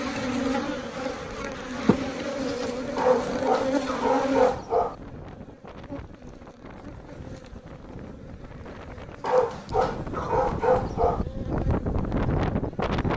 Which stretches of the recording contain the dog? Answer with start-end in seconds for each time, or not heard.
3.0-5.0, 9.2-11.2.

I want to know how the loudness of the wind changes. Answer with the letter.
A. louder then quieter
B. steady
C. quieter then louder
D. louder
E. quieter
D.